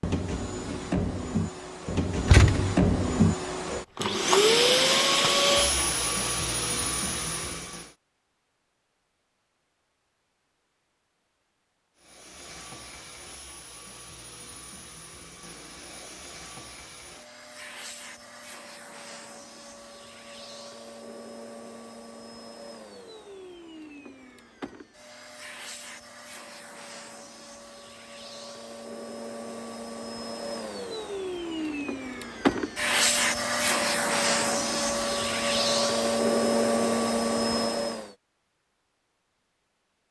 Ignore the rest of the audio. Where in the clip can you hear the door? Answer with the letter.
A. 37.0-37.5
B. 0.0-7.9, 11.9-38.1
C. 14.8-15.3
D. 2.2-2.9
D.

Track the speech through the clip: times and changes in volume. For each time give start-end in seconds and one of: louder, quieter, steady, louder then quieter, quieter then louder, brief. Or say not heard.
not heard.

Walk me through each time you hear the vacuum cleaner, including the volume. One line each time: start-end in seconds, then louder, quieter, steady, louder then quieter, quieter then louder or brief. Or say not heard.
0.0-7.9 louder then quieter
11.9-38.1 louder.